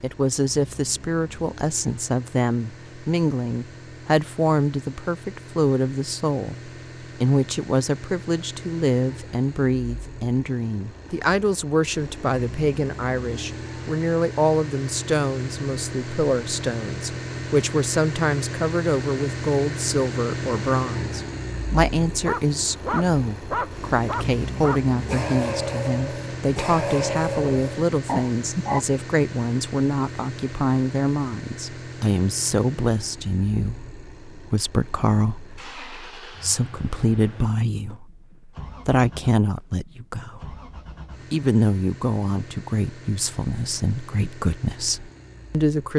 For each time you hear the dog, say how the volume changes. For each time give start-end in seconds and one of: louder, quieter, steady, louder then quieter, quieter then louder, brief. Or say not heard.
22.1-28.8 steady.